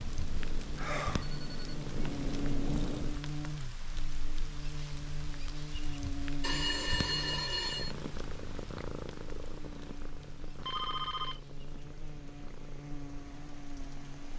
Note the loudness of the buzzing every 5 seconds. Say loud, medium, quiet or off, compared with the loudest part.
loud, loud, medium.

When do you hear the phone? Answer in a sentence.
You can hear the phone from 0.8 to 1.8 s, from 6.4 to 8.0 s and from 10.6 to 11.4 s.